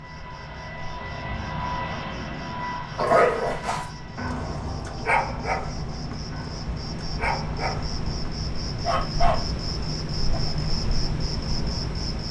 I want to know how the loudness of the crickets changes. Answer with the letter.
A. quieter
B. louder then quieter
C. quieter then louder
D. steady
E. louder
E.